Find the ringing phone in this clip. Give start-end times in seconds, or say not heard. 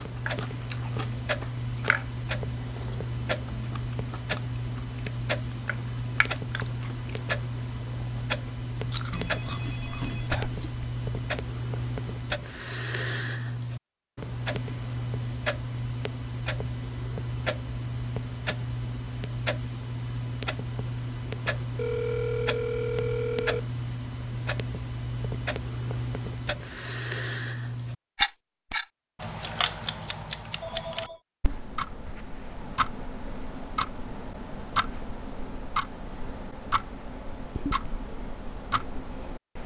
9.1-10.3, 21.8-23.6, 30.6-31.2.